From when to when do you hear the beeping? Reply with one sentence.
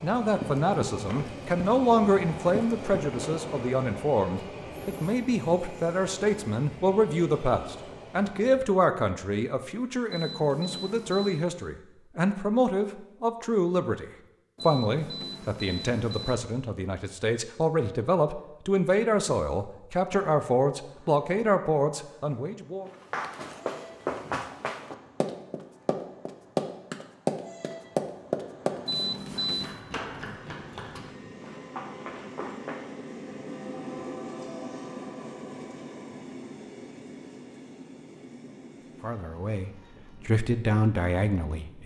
The beeping can be heard from 10.1 to 11.4 s, from 14.6 to 16.4 s and from 28.9 to 29.8 s.